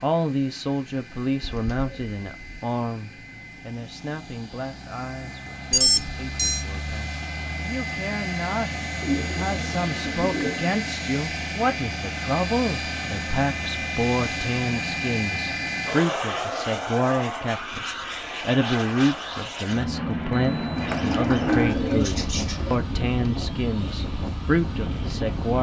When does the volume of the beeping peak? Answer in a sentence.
The volume of the beeping peaks at 6 seconds.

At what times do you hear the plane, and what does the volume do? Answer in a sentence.
You can hear the plane from 0.0 to 25.5 s, getting louder.